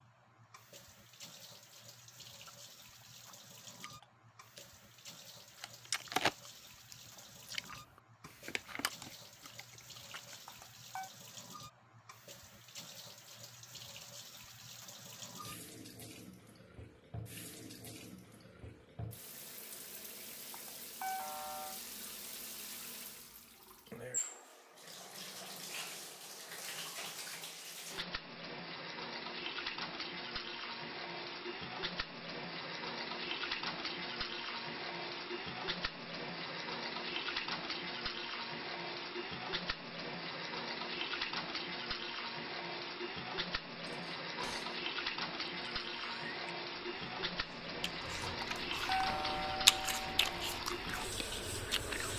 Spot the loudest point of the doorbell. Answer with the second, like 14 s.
49 s.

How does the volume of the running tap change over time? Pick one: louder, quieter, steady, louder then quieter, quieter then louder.
louder.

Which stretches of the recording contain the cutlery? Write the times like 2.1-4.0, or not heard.
43.9-44.8.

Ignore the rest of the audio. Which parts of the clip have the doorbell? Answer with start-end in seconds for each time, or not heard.
10.4-11.1, 20.5-21.8, 48.4-50.4.